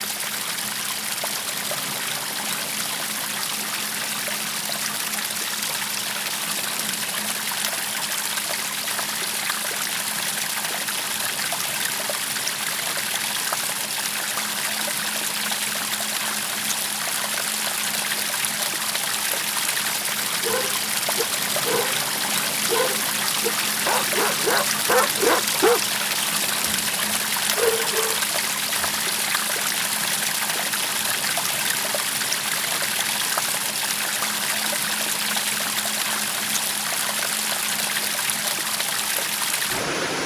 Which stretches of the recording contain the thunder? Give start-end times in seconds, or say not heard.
not heard.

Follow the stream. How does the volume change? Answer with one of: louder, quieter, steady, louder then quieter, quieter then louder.
steady.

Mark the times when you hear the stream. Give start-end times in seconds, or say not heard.
0.0-40.2.